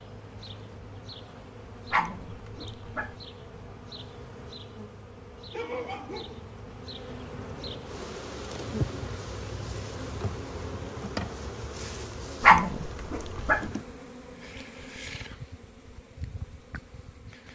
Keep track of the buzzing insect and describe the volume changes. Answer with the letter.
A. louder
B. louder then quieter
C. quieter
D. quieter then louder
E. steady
B.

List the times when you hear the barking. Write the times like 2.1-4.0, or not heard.
1.9-3.1, 12.4-13.7.